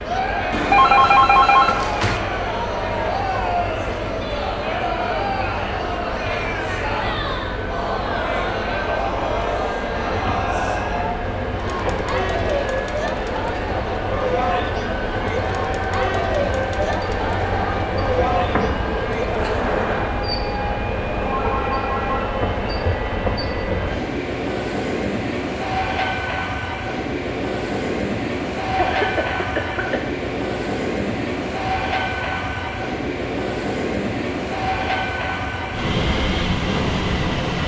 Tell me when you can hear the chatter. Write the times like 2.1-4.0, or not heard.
0.0-20.2.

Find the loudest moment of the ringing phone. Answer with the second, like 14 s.
1 s.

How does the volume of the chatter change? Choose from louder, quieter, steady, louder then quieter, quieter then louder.
steady.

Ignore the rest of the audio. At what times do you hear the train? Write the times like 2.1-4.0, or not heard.
0.0-37.6.